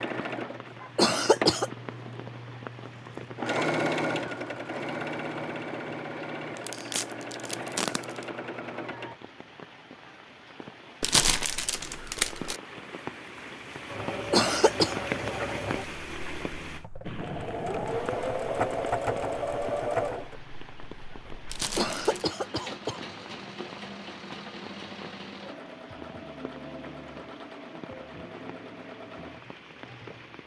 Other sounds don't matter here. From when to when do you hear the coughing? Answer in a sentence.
The coughing can be heard from 0.9 to 1.7 s, from 14.3 to 14.9 s and from 21.8 to 23.0 s.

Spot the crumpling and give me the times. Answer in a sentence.
The crumpling can be heard from 6.5 to 8.2 s, from 11.0 to 12.6 s and from 21.4 to 22.2 s.